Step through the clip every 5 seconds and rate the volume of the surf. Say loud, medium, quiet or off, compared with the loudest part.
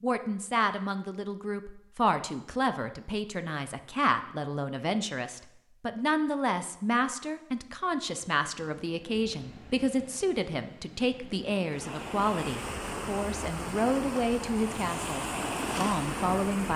off, quiet, medium, loud.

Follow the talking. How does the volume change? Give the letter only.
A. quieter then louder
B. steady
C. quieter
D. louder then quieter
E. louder
B.